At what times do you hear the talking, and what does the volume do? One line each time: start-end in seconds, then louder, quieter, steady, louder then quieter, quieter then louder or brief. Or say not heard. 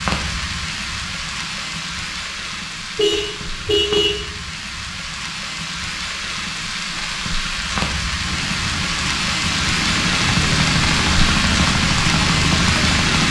not heard.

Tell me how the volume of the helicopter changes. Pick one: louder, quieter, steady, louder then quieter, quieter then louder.
louder.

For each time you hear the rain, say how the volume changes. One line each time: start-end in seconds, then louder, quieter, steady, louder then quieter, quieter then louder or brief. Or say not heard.
0.0-13.2 louder.